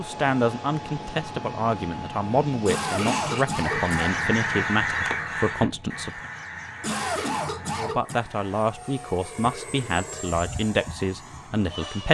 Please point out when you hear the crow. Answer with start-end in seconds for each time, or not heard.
2.9-8.7.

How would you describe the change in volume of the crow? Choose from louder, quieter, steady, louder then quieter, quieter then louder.
quieter.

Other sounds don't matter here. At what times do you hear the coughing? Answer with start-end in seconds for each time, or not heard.
2.6-4.2, 6.8-8.2.